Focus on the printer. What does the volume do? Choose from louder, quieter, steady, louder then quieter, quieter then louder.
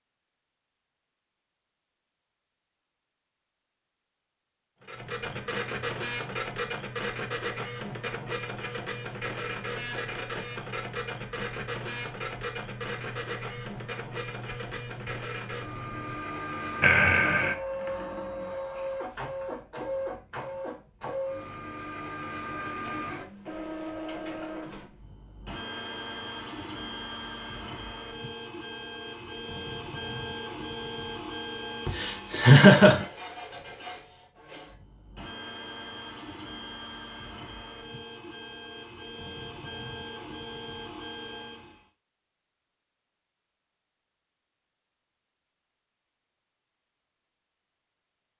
quieter.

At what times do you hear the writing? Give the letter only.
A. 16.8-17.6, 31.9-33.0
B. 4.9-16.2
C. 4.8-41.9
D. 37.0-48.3
B.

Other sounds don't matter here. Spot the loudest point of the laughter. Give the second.
33 s.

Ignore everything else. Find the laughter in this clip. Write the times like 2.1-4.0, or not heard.
16.8-17.6, 31.9-33.0.